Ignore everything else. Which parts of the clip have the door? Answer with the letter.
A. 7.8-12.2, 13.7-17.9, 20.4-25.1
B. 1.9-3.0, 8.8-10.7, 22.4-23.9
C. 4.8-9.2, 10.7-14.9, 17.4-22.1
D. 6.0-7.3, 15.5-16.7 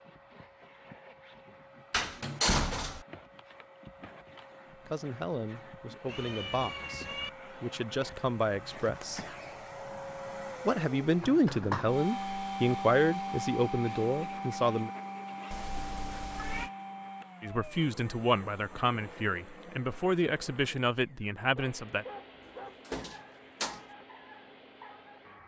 B.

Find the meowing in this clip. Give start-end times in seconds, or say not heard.
6.0-7.3, 15.5-16.7.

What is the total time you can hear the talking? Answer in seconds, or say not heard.
13 s.